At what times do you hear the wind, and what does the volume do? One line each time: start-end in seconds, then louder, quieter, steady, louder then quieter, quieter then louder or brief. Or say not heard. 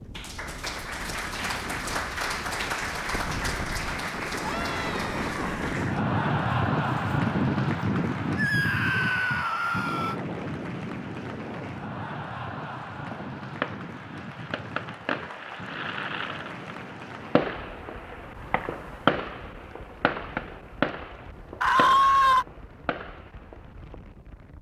0.0-24.5 louder then quieter.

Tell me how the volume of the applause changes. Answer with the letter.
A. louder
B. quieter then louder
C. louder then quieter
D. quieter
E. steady
D.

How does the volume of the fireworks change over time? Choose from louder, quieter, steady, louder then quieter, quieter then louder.
louder then quieter.